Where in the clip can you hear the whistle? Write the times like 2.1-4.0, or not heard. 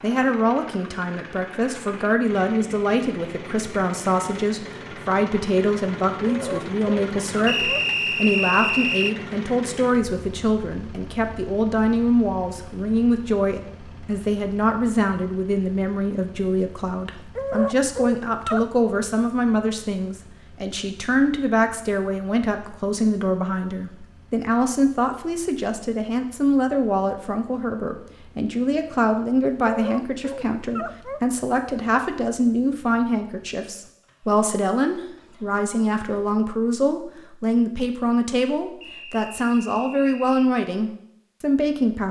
7.5-9.2, 38.8-40.5.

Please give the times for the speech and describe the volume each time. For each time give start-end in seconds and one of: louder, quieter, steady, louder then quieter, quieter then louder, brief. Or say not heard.
0.0-42.0 steady.